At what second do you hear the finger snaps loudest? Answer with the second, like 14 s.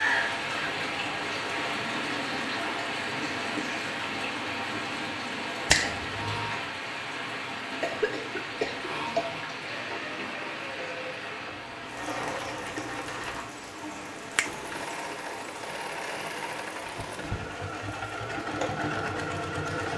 6 s.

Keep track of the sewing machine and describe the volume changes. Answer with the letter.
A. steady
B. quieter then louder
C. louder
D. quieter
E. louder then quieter
C.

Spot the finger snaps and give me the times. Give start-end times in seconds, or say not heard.
5.7-6.5, 14.3-14.9.